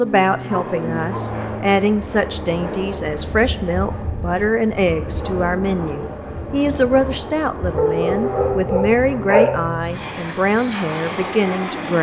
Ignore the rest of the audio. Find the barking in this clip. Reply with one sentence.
You can hear the barking from 0.5 to 1.4 s and from 7.8 to 9.4 s.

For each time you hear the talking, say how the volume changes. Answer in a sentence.
The talking can be heard from 0.0 to 11.9 s, at a steady volume.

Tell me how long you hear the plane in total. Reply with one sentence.
The plane can be heard for 12 seconds in total.